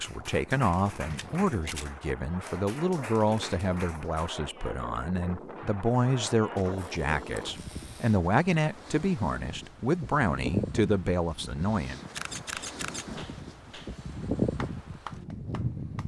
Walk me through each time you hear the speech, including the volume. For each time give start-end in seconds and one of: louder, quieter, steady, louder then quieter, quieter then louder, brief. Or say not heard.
0.0-12.0 steady.